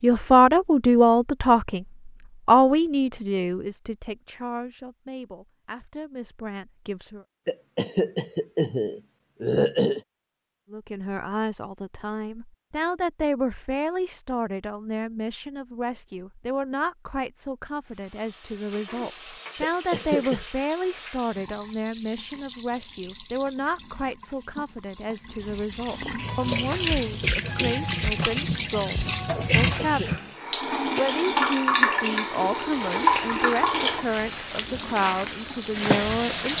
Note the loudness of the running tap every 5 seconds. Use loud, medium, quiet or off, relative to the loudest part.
off, off, off, quiet, quiet, loud, loud, loud.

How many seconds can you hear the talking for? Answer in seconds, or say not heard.
33 s.